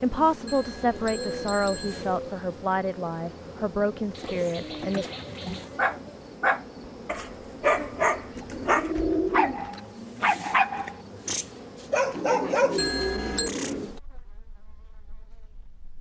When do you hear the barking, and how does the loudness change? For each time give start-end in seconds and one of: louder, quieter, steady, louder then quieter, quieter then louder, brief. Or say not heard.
5.8-13.8 steady.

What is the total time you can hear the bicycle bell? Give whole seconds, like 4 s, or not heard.
2 s.